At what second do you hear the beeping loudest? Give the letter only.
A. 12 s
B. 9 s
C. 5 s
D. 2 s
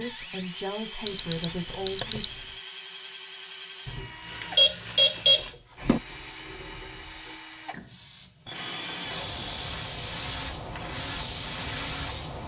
D.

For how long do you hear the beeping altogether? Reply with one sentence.
The beeping can be heard for 4 seconds in total.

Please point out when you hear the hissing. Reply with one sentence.
The hissing can be heard from 4.2 to 12.4 s.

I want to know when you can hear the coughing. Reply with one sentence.
You can't hear the coughing here.